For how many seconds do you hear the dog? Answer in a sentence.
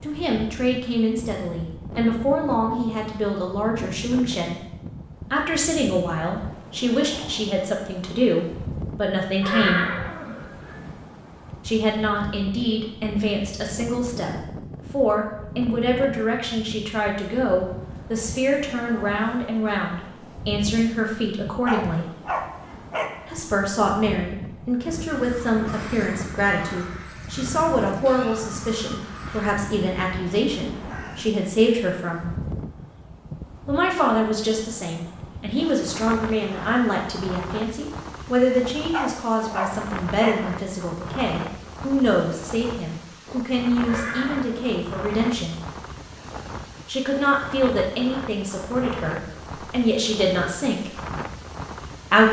You can hear the dog for 3 seconds altogether.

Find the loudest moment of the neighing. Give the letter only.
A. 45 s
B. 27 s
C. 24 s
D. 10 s
D.